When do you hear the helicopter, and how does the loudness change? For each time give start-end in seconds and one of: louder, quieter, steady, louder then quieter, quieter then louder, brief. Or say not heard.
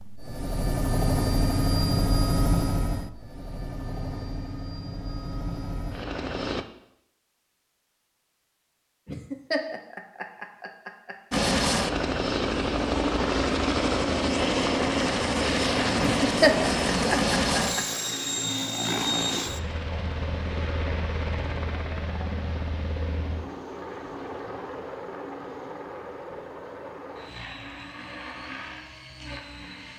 0.0-6.7 quieter
11.3-29.9 quieter.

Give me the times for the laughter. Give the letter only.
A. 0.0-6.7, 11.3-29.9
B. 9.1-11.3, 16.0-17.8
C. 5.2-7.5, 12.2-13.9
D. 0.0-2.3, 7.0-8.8
B.